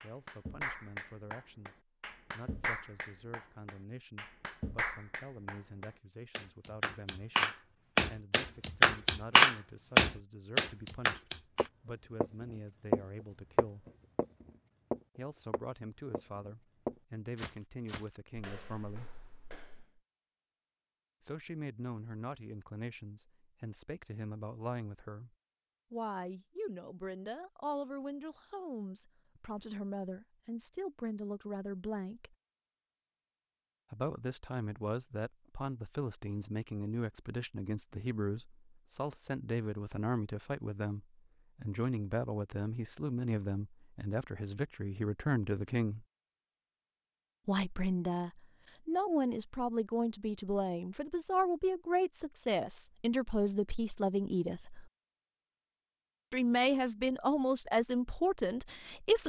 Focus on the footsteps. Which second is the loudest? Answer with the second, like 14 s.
13 s.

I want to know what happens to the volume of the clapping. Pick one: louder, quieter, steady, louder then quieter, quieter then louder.
louder.